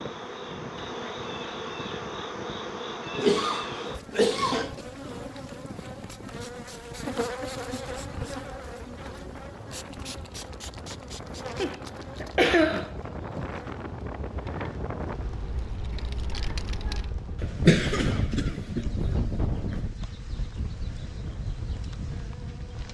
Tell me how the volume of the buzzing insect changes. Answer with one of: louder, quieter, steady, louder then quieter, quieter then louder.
quieter.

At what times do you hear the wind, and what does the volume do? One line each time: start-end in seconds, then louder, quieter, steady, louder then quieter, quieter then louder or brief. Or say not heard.
0.0-22.8 louder.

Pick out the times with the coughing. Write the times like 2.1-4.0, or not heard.
3.1-4.8, 11.6-12.9, 17.4-19.8.